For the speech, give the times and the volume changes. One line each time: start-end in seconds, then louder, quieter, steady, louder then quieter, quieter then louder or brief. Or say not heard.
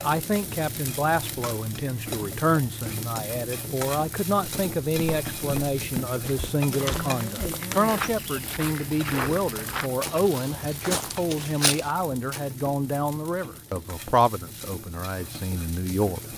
0.0-16.2 steady.